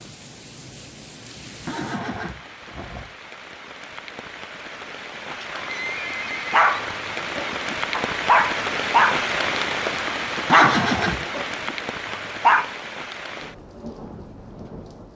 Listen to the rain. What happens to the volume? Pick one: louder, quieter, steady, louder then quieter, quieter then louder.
louder then quieter.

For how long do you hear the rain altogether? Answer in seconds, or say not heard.
15 s.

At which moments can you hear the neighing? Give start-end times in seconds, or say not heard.
1.6-3.1, 5.3-6.7, 10.4-11.2.